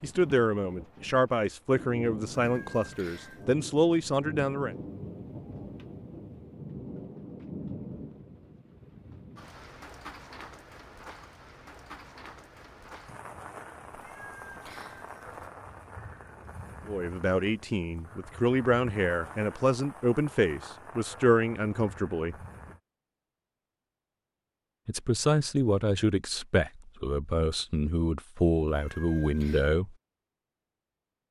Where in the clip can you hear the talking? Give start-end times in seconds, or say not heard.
0.0-4.8, 16.9-22.4, 24.9-29.9.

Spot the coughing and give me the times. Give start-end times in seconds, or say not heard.
not heard.